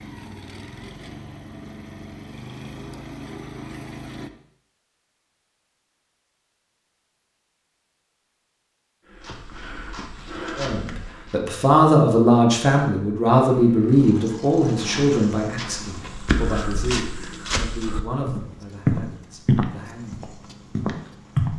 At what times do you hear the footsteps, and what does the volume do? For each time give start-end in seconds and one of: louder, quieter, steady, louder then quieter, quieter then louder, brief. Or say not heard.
9.1-11.4 brief
14.6-21.5 louder then quieter.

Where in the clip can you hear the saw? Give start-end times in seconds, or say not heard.
not heard.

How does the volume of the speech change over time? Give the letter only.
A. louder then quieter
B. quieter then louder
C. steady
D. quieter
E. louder
D.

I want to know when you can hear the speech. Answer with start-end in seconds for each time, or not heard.
10.6-20.2.